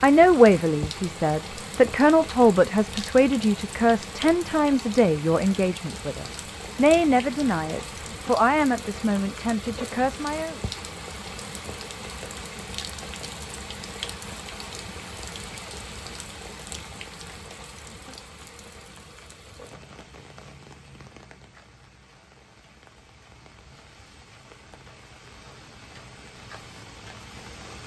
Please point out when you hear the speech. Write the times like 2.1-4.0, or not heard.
0.0-10.6.